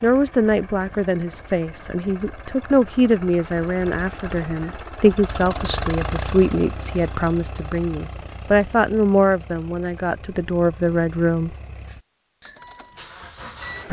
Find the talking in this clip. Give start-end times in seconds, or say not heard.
0.0-11.6.